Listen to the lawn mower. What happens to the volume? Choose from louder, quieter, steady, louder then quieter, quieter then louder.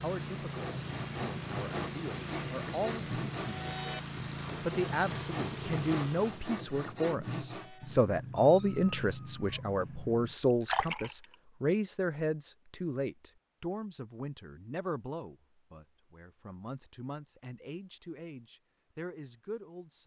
steady.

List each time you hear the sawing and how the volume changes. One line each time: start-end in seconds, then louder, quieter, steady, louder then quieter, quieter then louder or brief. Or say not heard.
0.3-7.9 steady.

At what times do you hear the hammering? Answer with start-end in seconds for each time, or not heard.
not heard.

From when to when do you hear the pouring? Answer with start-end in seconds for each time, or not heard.
10.4-11.3.